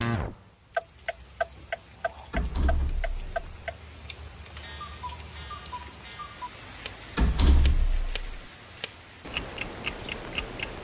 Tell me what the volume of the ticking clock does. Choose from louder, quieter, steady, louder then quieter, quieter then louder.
quieter then louder.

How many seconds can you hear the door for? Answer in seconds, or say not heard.
2 s.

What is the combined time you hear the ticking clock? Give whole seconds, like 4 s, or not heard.
11 s.